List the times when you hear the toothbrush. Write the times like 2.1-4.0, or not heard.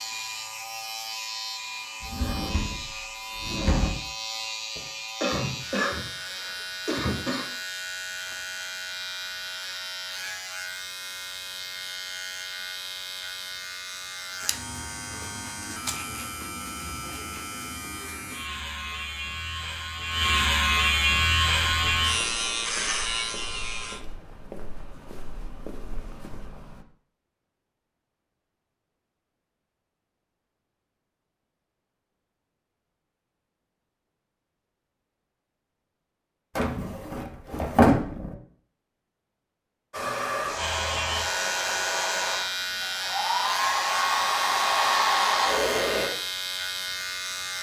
not heard.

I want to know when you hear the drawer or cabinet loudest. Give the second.
38 s.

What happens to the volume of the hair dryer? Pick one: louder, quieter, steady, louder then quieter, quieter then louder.
louder.